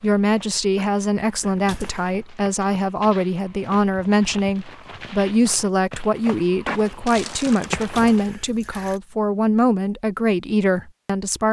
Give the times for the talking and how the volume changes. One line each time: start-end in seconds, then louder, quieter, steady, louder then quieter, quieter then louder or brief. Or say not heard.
0.0-11.4 steady.